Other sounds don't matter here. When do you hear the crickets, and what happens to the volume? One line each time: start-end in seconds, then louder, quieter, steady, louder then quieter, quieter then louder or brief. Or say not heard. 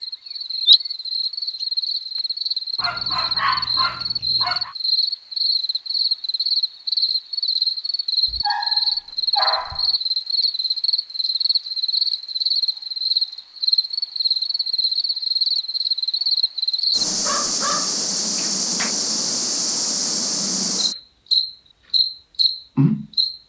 0.0-23.4 steady.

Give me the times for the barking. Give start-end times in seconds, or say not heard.
2.8-4.7, 8.2-9.9, 17.1-18.9.